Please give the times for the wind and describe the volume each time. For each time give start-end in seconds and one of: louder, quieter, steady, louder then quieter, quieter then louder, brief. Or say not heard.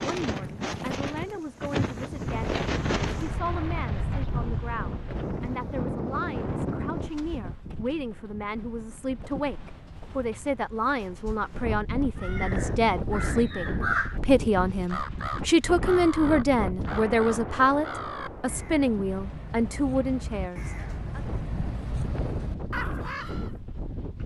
0.0-24.2 quieter.